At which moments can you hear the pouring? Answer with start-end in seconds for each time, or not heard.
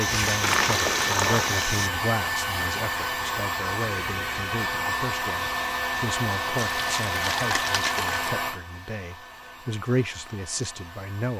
0.4-1.5, 6.5-8.3.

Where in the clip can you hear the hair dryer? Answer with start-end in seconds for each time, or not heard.
0.0-11.3.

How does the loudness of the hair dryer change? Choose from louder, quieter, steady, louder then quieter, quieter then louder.
quieter.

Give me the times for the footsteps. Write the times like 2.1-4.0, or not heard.
0.0-1.9.